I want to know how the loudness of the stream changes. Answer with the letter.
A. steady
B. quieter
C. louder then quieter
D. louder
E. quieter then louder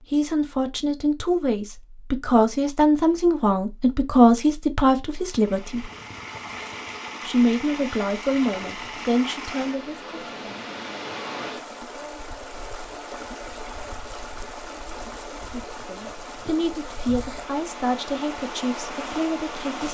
A.